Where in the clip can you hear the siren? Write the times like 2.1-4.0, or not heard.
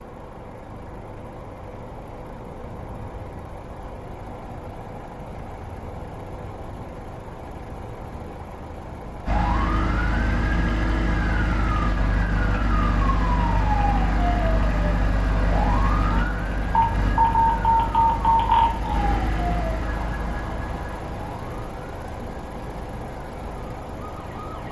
9.2-24.6.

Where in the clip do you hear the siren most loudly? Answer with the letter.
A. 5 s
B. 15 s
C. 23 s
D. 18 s
D.